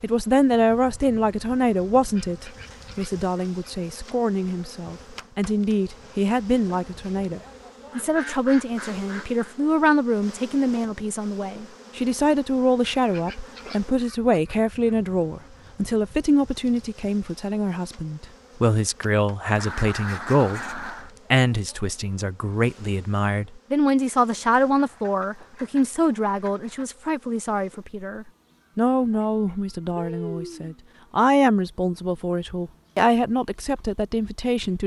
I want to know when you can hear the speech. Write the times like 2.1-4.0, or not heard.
0.0-34.8.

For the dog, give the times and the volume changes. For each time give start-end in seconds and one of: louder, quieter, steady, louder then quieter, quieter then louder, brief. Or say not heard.
not heard.